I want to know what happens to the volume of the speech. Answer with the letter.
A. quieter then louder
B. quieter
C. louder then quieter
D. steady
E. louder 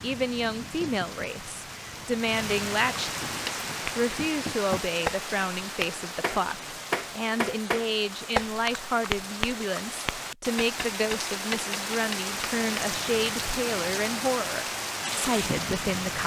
D.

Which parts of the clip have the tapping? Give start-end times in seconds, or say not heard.
3.3-12.8.